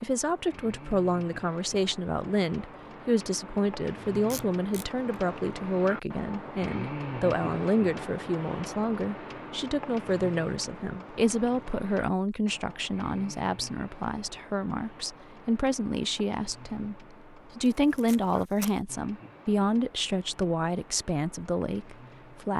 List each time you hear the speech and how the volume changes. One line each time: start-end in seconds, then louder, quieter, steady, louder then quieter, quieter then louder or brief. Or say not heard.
0.0-22.5 steady.